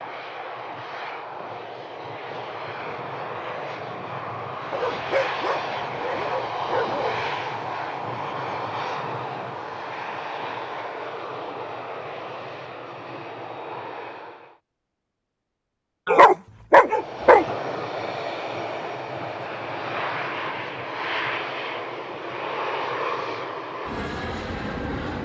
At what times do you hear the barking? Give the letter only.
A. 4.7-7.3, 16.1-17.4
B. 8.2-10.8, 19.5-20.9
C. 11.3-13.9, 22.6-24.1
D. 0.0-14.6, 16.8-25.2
A.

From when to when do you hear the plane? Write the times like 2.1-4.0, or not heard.
0.0-14.6, 16.8-25.2.